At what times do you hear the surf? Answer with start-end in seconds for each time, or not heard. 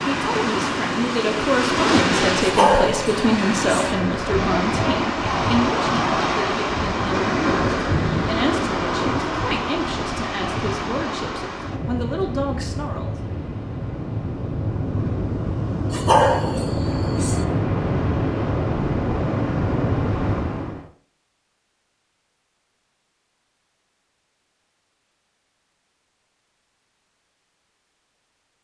0.0-20.9.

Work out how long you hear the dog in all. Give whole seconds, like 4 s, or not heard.
3 s.